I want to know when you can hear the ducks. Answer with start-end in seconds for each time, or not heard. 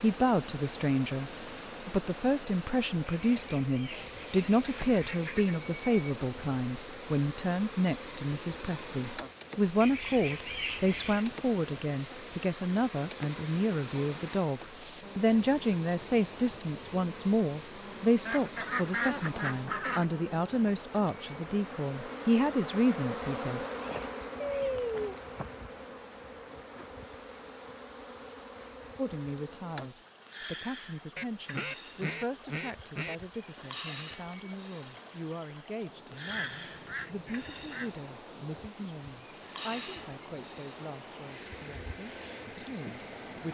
3.1-5.5, 9.8-11.3, 18.2-20.1, 24.4-25.6, 31.1-33.1, 36.2-38.0.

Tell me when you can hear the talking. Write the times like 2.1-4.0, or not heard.
0.0-23.6, 28.9-43.4.